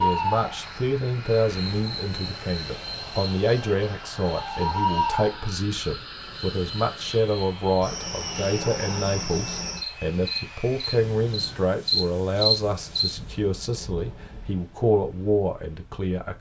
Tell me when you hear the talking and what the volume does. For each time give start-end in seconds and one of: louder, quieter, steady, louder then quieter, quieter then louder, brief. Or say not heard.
0.0-16.3 steady.